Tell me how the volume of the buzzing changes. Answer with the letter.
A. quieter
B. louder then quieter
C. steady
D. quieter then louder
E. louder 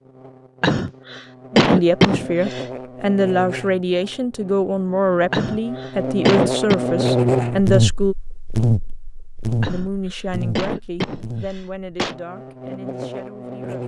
B.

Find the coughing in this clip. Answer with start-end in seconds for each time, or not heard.
0.6-2.6, 5.3-6.8, 9.6-12.2.